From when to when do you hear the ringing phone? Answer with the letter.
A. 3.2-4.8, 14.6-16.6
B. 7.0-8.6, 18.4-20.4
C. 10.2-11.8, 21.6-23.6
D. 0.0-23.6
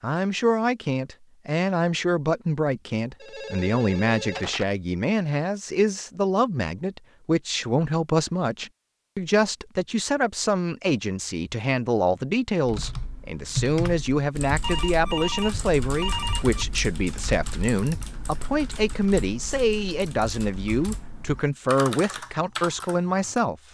A.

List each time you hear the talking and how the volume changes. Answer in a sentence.
You can hear the talking from 0.0 to 23.6 s, at a steady volume.